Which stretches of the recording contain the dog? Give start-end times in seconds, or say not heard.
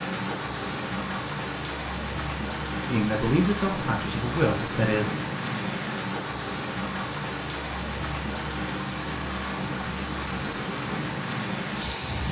not heard.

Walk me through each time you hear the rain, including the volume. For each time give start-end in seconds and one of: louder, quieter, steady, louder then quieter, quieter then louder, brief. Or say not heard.
0.0-12.2 steady.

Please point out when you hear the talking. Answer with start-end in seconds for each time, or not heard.
2.9-5.1.